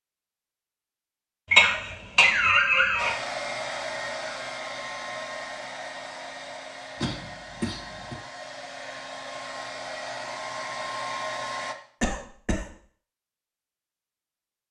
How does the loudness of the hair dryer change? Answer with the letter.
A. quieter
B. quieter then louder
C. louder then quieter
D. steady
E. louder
B.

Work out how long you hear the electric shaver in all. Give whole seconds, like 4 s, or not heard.
not heard.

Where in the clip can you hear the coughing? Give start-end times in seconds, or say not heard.
1.5-3.1, 7.0-8.2, 12.0-12.7.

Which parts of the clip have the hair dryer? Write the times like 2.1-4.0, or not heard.
3.0-11.8.